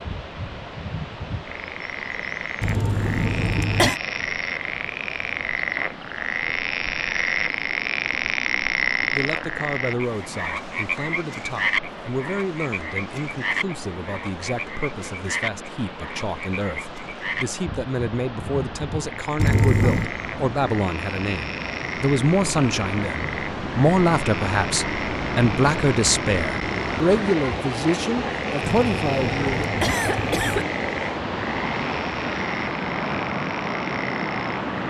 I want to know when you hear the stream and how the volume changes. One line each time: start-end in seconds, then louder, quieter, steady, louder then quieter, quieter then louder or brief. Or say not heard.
0.0-34.8 louder.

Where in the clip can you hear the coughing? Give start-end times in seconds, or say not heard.
2.6-4.0, 19.4-20.1, 28.6-30.6.